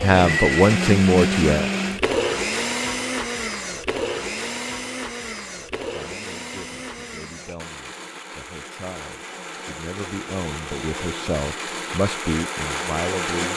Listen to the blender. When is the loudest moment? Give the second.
1 s.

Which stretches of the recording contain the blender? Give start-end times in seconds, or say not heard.
0.0-13.5.